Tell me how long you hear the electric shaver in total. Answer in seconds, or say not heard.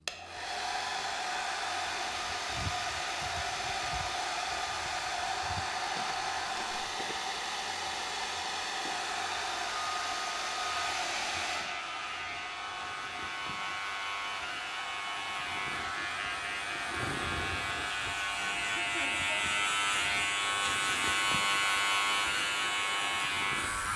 13 s.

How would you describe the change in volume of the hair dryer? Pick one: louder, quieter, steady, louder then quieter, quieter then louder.
quieter.